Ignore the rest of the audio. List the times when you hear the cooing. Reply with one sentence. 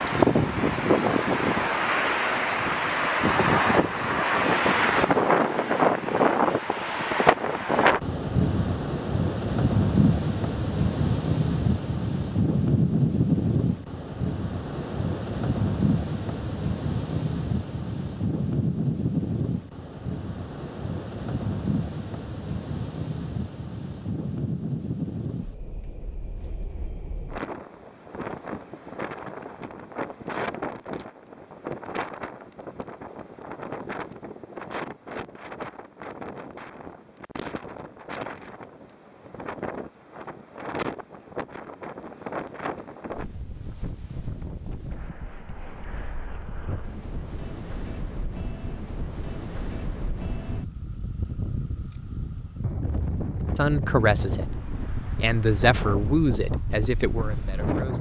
You can't hear the cooing here.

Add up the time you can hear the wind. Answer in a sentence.
You can hear the wind for 58 seconds altogether.